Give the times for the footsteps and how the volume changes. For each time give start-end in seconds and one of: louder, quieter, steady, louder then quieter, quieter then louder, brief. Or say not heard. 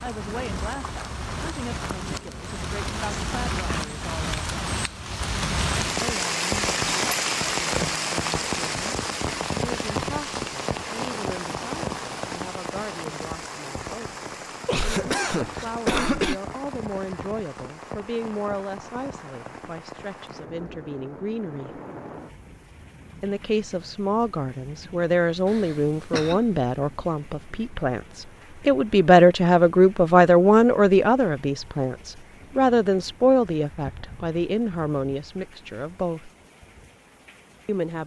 not heard.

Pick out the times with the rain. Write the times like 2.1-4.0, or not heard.
0.0-38.0.